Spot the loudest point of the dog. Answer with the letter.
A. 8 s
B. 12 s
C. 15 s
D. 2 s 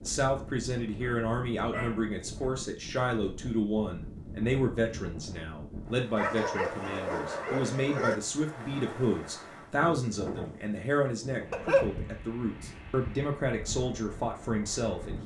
B.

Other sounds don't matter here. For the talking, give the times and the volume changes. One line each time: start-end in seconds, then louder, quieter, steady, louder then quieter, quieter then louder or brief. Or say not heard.
0.1-15.2 steady.